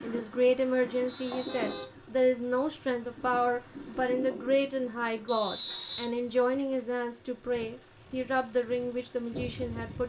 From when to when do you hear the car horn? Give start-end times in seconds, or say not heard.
1.3-1.9.